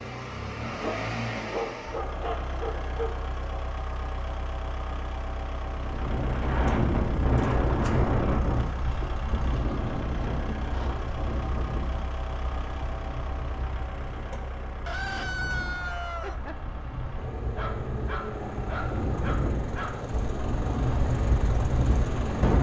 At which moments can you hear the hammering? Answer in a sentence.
You can't hear the hammering here.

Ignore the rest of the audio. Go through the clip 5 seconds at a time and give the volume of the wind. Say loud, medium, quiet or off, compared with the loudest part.
off, loud, medium, medium, loud.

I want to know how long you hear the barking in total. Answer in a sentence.
The barking can be heard for 5 seconds in total.